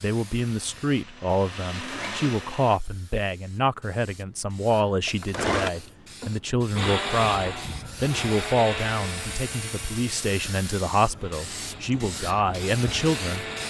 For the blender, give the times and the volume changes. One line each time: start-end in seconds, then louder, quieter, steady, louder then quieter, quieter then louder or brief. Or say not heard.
0.0-2.8 brief
5.0-13.6 quieter then louder.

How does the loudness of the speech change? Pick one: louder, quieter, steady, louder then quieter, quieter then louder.
steady.